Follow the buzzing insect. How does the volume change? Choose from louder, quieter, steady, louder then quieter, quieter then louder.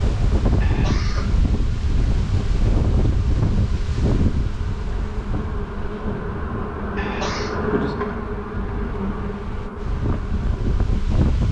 louder then quieter.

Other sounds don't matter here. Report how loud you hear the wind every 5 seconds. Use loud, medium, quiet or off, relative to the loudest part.
loud, medium, loud.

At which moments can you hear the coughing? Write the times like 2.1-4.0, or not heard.
0.6-1.4, 7.0-7.6.